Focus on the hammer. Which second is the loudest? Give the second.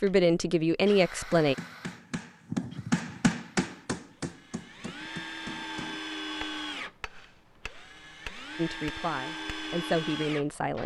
3 s.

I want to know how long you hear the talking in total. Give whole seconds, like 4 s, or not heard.
4 s.